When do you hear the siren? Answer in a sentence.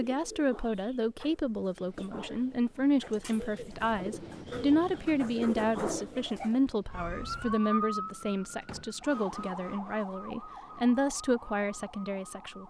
The siren can be heard from 6.9 to 12.6 s.